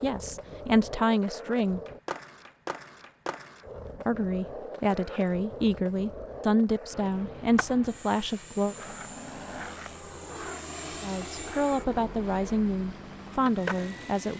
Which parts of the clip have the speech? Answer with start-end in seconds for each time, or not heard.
0.0-1.8, 4.0-8.8, 11.0-14.3.